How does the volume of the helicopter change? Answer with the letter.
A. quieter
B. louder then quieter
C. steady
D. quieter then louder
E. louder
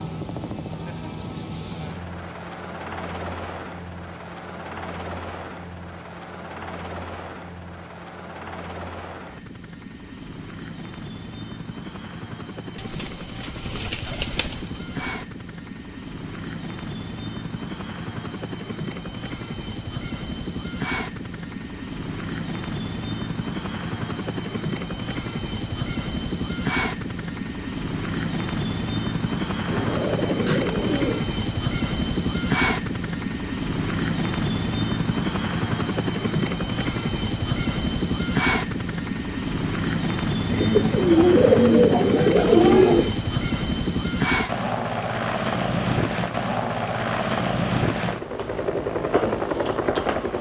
E.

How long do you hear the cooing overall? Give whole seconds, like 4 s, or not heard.
7 s.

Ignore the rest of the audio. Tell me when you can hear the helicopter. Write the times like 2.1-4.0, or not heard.
0.0-50.3.